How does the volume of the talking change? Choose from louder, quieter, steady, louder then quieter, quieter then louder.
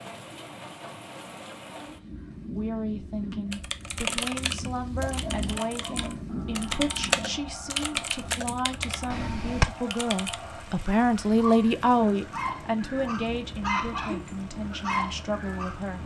louder then quieter.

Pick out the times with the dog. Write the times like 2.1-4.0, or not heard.
5.0-15.8.